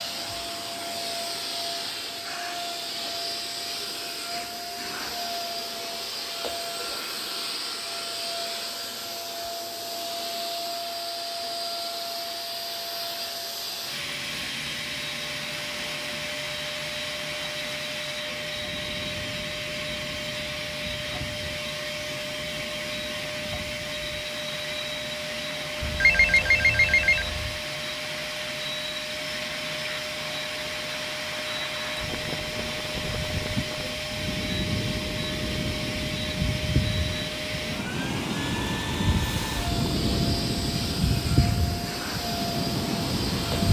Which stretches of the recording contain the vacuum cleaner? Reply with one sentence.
The vacuum cleaner can be heard from 0.0 to 43.6 s.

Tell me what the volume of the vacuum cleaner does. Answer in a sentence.
The volume of the vacuum cleaner stays about the same.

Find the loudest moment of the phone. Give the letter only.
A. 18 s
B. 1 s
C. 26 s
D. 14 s
C.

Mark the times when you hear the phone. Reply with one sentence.
You can hear the phone from 25.8 to 27.6 s.